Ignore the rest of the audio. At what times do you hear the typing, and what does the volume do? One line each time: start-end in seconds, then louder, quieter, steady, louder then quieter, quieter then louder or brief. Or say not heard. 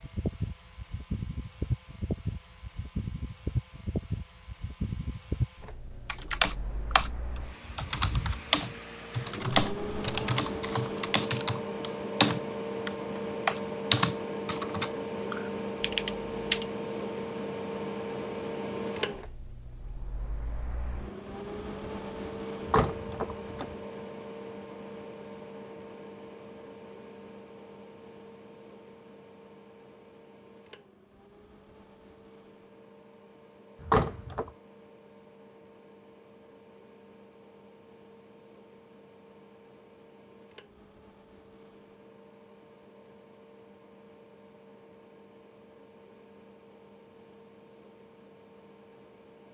6.0-16.6 louder then quieter.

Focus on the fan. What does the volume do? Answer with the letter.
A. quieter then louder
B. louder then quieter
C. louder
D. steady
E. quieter
E.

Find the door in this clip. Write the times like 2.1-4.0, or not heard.
9.4-10.2, 22.6-23.8, 33.8-34.5.